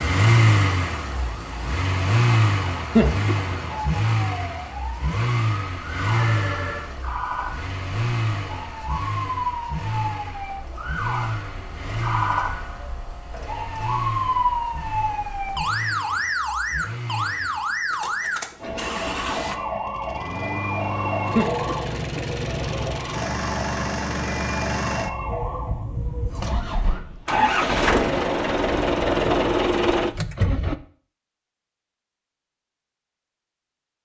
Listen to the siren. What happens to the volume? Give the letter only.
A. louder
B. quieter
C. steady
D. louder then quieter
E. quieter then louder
D.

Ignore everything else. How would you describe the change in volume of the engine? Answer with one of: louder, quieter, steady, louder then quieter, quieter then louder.
quieter then louder.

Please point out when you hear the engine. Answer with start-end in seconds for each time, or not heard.
0.0-30.8.